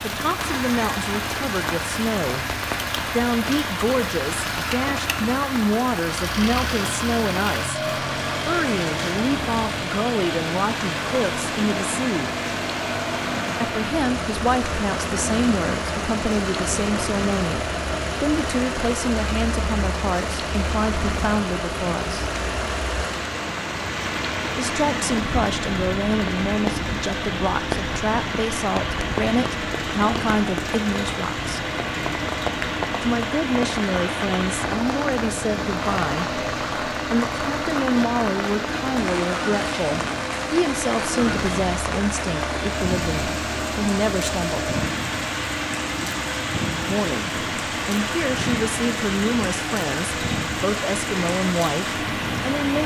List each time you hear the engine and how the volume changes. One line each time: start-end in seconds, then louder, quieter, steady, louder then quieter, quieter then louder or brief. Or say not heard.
0.0-52.8 steady.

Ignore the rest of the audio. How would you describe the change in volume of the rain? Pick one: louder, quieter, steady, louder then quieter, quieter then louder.
steady.